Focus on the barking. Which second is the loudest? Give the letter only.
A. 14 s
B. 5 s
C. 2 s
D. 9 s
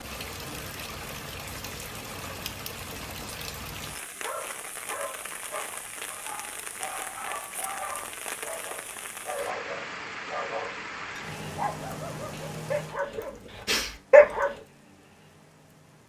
A.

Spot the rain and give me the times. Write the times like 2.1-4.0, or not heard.
0.0-16.0.